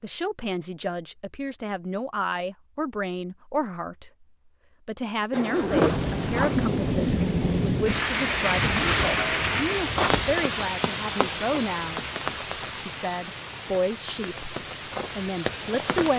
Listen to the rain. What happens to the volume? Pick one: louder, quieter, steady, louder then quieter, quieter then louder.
quieter.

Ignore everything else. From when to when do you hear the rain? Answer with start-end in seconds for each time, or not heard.
5.6-16.1.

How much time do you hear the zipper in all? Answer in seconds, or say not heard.
3 s.